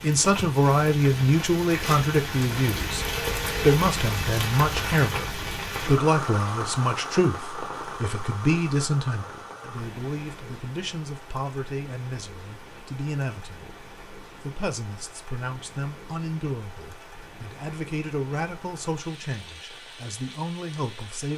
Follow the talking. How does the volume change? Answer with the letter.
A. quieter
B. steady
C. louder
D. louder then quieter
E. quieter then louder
A.